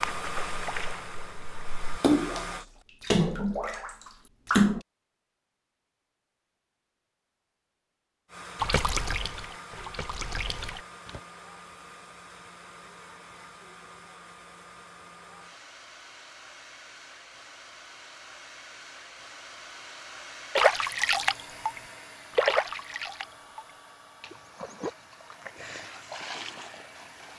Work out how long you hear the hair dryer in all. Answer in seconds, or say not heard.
22 s.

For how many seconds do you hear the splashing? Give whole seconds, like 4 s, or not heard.
14 s.